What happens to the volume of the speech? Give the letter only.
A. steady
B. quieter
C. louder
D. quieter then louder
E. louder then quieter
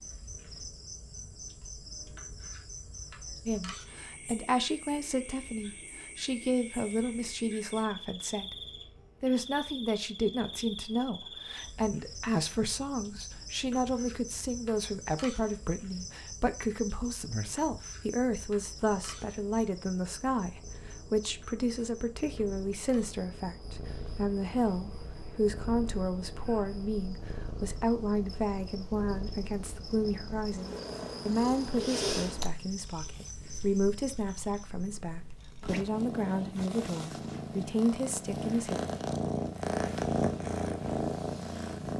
A.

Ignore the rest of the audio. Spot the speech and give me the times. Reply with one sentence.
The speech can be heard from 3.5 to 8.6 s and from 9.2 to 38.8 s.